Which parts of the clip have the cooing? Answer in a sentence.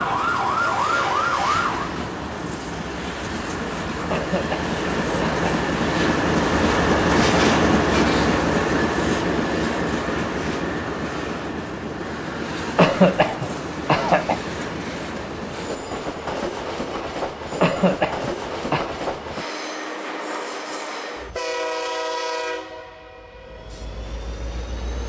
You can't hear the cooing here.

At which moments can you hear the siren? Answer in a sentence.
The siren can be heard from 0.0 to 1.9 s.